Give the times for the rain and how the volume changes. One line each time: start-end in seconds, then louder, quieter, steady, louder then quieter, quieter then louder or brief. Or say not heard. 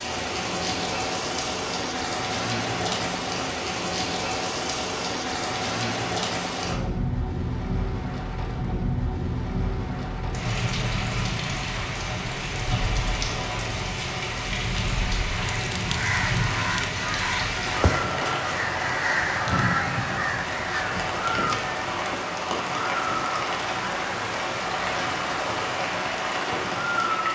0.0-27.2 steady.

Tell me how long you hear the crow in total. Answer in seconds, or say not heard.
6 s.